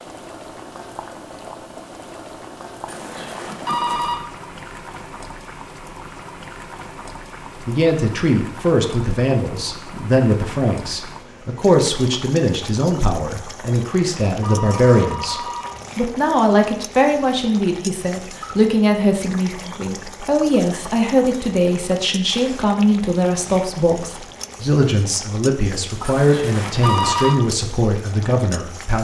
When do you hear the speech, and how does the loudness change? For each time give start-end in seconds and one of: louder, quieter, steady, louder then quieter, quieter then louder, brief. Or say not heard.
7.7-28.9 steady.